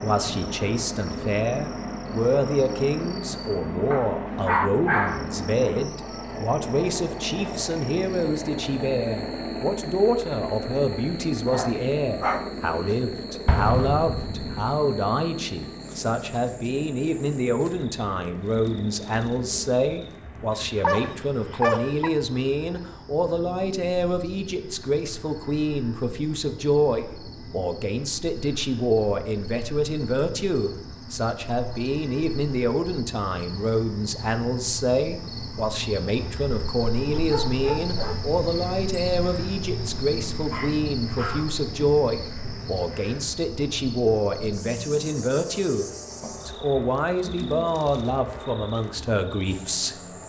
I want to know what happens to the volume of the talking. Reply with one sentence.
The volume of the talking stays about the same.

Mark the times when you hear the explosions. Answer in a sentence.
You can hear the explosions from 13.4 to 14.7 s.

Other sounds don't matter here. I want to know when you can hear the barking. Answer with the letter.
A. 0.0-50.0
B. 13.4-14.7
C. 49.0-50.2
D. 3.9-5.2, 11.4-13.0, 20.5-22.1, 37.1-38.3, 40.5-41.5
D.